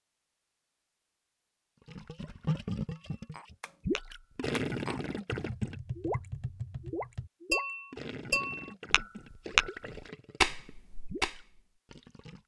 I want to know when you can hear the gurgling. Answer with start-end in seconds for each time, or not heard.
1.9-12.4.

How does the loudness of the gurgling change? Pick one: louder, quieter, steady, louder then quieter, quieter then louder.
quieter.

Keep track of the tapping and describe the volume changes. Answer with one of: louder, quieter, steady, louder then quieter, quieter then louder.
louder.